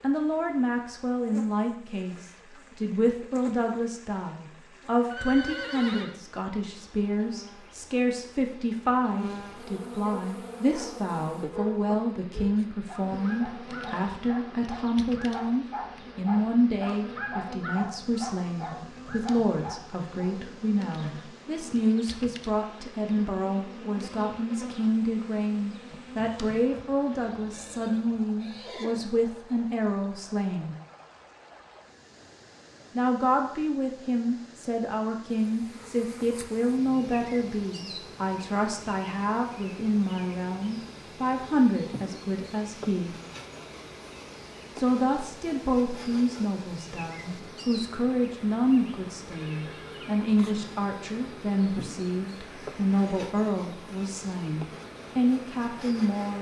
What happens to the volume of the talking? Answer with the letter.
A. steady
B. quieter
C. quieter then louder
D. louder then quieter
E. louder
A.